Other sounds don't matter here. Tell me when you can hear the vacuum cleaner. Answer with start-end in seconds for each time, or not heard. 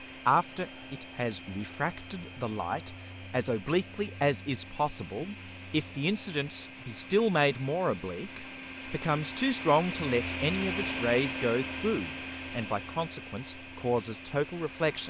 0.0-15.0.